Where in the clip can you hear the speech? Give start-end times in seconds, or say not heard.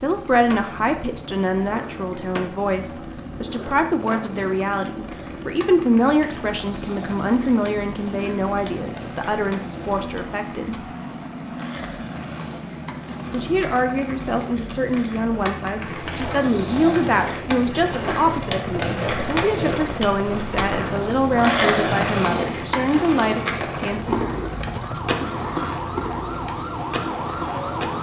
0.0-10.8, 13.3-24.2.